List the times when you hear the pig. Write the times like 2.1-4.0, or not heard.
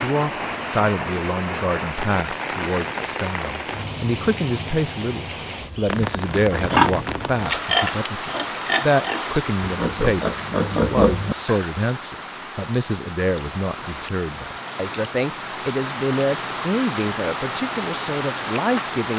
6.5-11.7.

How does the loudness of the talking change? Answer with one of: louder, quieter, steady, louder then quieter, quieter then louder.
steady.